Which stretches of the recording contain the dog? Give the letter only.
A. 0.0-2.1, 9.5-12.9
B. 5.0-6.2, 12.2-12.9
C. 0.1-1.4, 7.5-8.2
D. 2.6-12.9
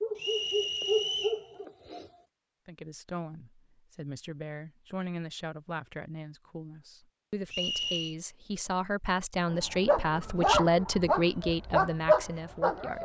A.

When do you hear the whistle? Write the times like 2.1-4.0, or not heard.
0.1-1.4, 7.5-8.2.